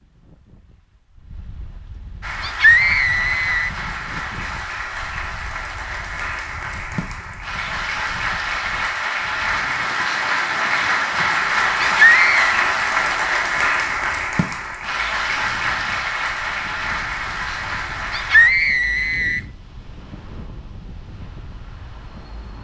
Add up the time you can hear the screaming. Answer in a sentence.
You can hear the screaming for 3 seconds altogether.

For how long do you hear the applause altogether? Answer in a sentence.
You can hear the applause for 16 seconds altogether.